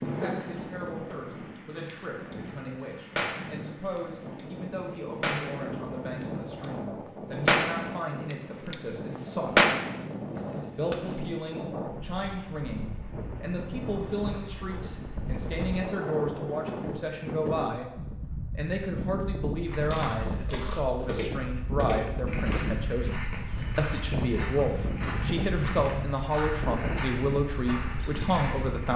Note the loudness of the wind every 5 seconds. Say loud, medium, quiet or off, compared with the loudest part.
medium, loud, loud, loud, loud, loud.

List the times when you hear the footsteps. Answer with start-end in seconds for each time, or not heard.
19.6-28.9.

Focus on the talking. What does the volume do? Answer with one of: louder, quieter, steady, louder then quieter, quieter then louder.
louder.